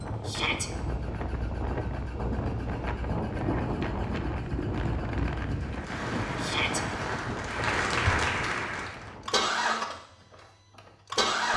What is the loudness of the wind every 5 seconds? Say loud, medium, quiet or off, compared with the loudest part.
loud, loud, off.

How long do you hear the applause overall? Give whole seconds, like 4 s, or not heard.
4 s.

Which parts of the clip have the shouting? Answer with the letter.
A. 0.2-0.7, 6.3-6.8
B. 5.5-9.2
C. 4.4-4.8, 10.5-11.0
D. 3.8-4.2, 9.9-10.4
A.